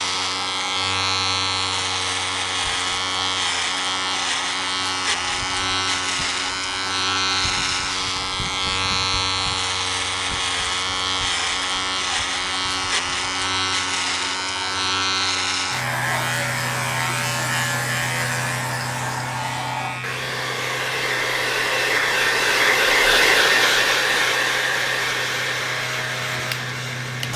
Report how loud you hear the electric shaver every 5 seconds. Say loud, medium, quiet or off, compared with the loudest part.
loud, loud, loud, loud, quiet, medium.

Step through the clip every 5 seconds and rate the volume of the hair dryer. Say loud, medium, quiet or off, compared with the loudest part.
quiet, quiet, quiet, quiet, loud, medium.